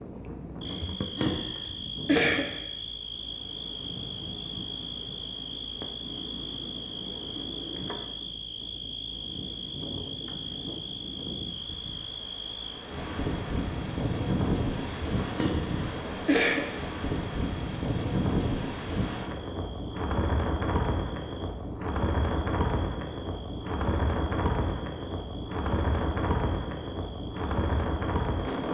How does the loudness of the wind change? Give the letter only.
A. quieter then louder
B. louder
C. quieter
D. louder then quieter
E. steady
B.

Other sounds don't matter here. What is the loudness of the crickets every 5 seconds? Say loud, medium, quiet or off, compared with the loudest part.
loud, loud, loud, quiet, quiet, quiet.